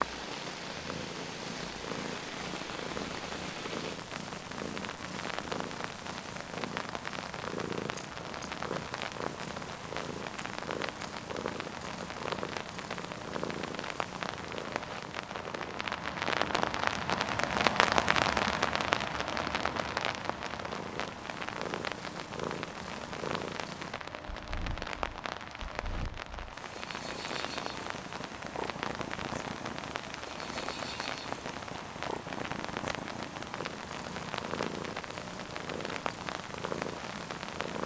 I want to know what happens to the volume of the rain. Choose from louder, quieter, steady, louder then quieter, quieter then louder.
louder then quieter.